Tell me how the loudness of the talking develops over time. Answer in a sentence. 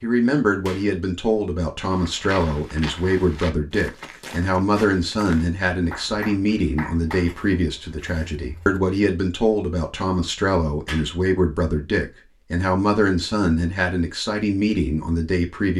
The loudness of the talking stays about the same.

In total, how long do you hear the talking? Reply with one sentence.
The talking can be heard for 16 seconds in total.